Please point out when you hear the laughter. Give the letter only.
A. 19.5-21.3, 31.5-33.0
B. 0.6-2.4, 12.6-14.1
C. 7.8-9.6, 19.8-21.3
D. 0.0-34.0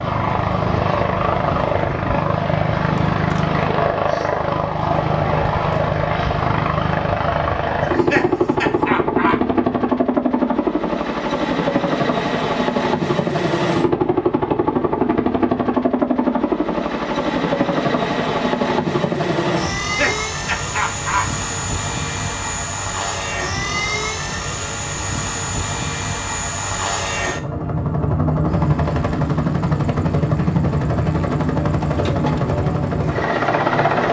C.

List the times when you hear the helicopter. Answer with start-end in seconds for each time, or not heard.
0.0-34.0.